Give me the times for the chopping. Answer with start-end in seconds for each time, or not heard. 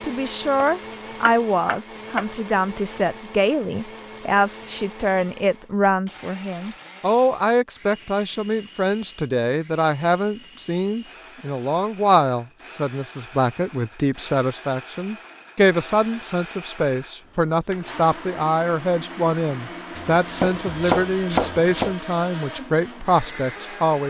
0.6-2.2, 19.9-21.9.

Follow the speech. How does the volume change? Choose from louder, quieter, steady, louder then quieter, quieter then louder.
steady.